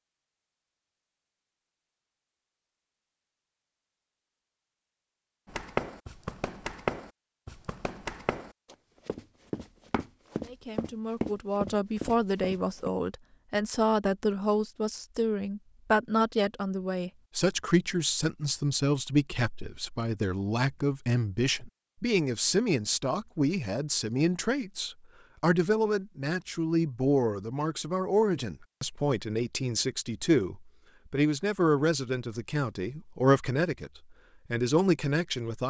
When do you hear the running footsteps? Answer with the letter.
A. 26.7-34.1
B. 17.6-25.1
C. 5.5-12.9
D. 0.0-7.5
C.